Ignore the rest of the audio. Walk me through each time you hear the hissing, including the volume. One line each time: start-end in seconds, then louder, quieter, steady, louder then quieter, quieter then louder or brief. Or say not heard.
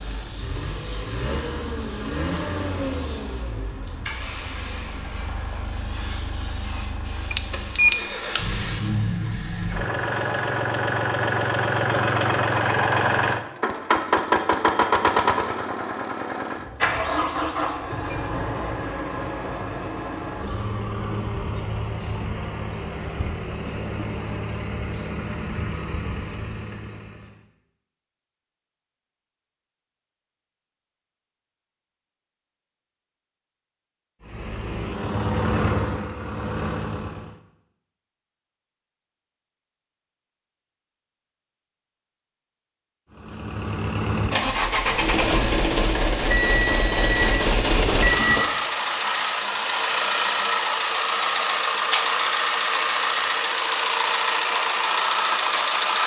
0.0-10.6 quieter.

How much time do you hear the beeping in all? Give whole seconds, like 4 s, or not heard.
3 s.